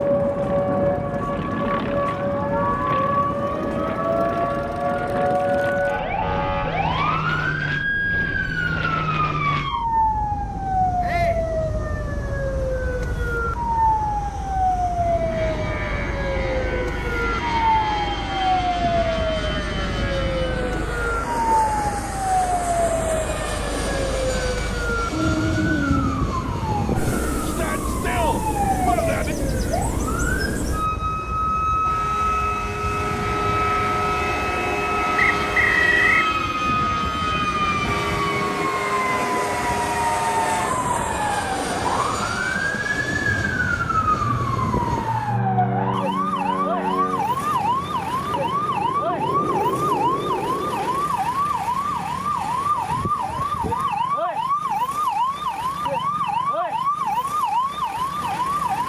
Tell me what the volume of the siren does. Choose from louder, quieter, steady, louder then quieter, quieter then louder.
steady.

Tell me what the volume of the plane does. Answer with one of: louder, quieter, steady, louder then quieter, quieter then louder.
steady.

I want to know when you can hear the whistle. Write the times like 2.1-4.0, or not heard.
35.1-36.3.